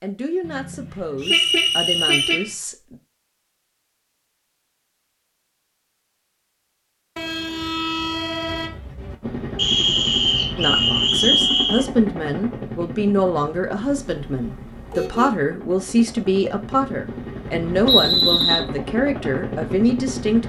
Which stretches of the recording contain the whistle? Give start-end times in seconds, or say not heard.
1.2-2.4, 9.6-11.8, 17.9-18.6.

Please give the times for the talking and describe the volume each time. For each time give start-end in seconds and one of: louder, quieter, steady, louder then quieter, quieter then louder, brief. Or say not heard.
0.0-3.0 brief
10.6-20.4 steady.